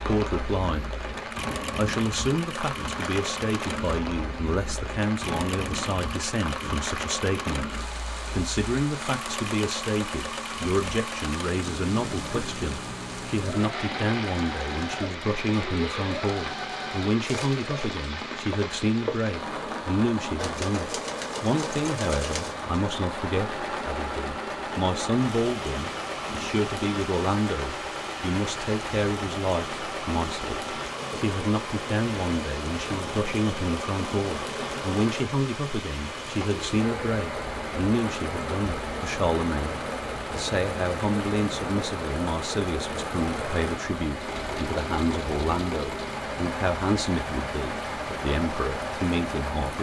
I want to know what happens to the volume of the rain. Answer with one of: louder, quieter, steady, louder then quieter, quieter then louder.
steady.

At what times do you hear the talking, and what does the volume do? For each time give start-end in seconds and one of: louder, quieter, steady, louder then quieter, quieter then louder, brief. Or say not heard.
0.0-1.0 brief
1.8-49.7 steady.